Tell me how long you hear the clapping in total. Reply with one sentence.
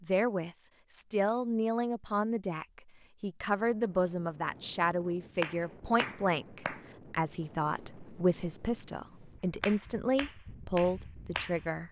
The clapping can be heard for 4 seconds in total.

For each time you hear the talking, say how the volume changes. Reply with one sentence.
You can hear the talking from 0.0 to 11.8 s, at a steady volume.